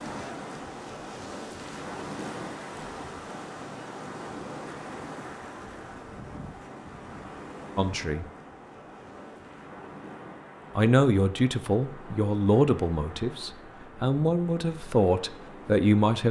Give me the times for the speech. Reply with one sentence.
The speech can be heard from 7.8 to 8.2 s and from 10.8 to 16.2 s.